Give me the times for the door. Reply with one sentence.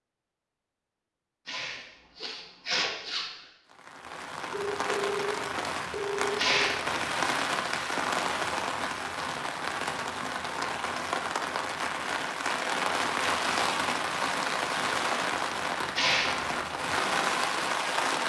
The door can't be heard in this clip.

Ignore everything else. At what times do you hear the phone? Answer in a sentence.
You can hear the phone from 4.5 to 6.8 s.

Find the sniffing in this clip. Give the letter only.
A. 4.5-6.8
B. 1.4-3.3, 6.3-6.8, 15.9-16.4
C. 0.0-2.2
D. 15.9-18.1
B.